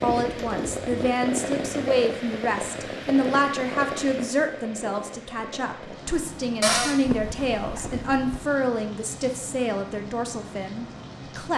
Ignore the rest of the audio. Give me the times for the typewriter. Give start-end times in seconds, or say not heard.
not heard.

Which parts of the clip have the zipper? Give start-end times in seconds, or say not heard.
0.1-1.1, 7.0-8.4.